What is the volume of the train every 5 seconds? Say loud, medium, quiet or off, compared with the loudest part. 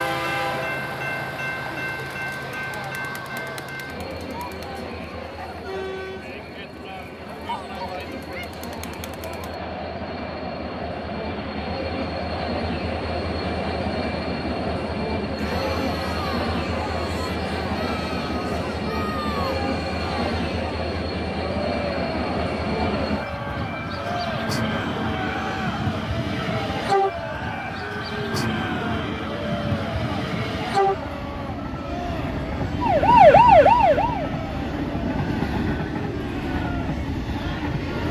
loud, medium, loud, loud, loud, loud, loud, loud.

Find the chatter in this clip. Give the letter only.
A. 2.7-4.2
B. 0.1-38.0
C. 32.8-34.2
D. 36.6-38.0
B.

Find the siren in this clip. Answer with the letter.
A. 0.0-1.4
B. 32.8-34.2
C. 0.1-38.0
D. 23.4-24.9
B.